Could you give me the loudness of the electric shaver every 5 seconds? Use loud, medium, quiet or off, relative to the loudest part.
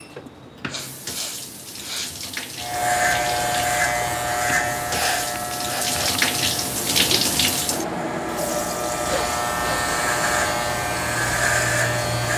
loud, medium, loud.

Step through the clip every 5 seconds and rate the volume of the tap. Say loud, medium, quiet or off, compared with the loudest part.
medium, loud, medium.